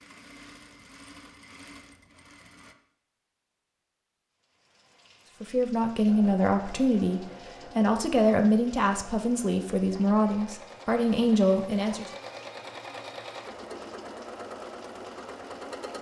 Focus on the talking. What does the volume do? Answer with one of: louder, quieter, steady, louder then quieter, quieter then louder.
steady.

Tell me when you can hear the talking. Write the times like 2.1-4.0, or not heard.
5.4-12.1.